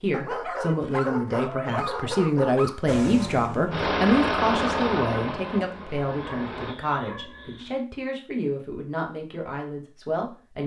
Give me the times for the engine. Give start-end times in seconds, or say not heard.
2.9-6.8.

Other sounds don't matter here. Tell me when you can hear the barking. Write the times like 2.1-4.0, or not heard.
0.1-3.0, 6.2-7.8.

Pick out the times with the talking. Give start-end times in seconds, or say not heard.
0.0-10.6.